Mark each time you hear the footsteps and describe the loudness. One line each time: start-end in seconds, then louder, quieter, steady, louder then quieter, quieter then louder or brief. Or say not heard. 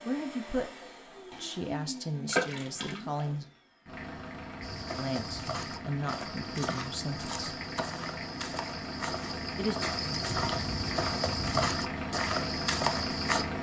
4.6-13.4 louder.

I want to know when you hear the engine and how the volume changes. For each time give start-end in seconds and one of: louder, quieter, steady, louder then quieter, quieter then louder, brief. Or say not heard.
0.0-13.5 louder.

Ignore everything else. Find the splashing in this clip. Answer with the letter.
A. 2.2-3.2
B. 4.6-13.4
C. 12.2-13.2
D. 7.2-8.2
A.